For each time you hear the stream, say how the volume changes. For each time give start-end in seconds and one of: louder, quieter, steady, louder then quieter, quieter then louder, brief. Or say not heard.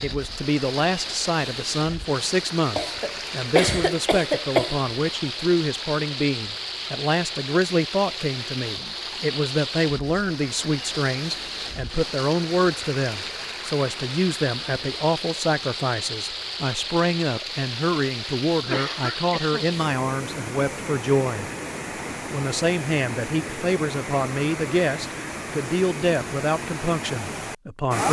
0.0-28.0 steady.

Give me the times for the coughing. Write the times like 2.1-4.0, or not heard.
2.8-4.8, 18.6-19.6.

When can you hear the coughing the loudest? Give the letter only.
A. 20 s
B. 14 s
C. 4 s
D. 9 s
C.